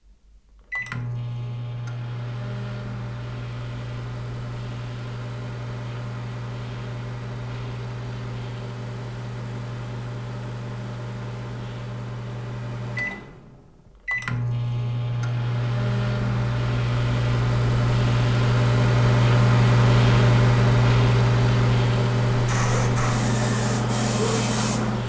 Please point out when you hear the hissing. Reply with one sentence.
The hissing can be heard from 22.3 to 25.0 s.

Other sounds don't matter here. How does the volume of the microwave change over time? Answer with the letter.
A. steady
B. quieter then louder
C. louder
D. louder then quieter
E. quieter
C.